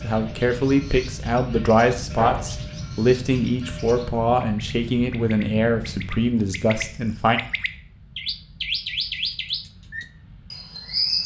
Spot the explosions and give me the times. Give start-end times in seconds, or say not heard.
2.1-2.6.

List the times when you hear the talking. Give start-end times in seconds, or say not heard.
0.0-7.4.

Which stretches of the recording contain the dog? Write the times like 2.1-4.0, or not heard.
not heard.